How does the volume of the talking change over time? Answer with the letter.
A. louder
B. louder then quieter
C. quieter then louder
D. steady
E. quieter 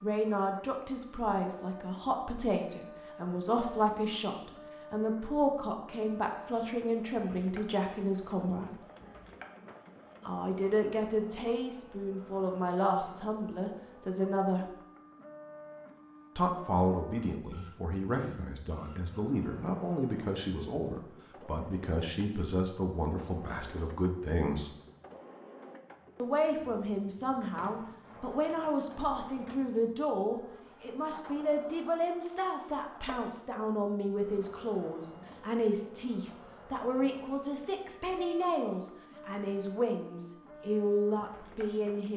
D.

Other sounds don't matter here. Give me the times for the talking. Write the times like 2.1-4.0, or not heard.
0.0-8.8, 10.2-14.7, 16.4-24.7, 26.1-42.1.